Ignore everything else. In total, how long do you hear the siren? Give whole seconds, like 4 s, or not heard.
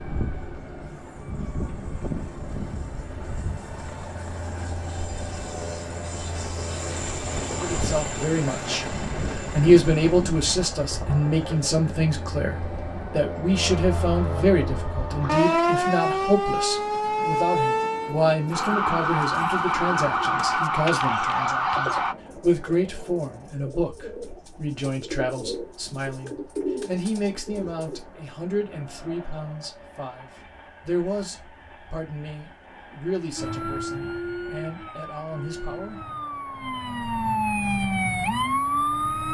28 s.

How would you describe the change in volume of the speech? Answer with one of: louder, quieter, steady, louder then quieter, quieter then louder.
quieter.